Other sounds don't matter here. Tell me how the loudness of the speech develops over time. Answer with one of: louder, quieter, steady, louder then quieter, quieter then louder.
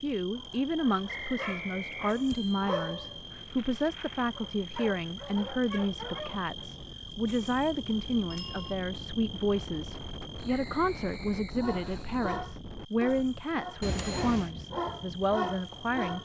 steady.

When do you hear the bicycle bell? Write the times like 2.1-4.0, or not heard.
2.3-3.5, 8.3-8.8, 13.8-14.5.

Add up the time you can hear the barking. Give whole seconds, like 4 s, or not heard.
11 s.